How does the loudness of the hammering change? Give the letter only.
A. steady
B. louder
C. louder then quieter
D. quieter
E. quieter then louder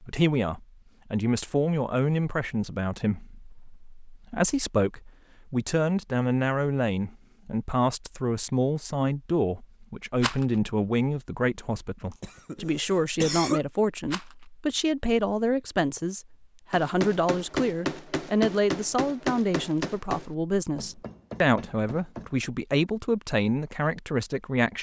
D.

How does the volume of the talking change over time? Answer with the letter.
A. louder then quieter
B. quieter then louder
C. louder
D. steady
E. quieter
D.